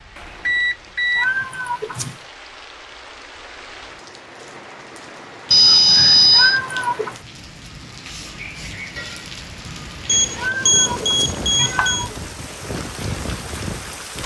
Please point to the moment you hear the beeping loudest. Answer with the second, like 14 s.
6 s.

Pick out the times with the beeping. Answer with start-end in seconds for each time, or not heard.
0.1-1.3, 5.5-6.6, 10.1-12.1.